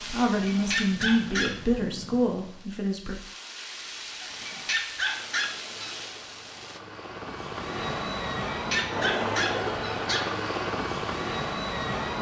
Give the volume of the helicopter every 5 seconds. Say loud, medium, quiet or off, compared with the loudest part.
quiet, loud, loud.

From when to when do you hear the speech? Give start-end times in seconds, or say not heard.
0.0-3.2.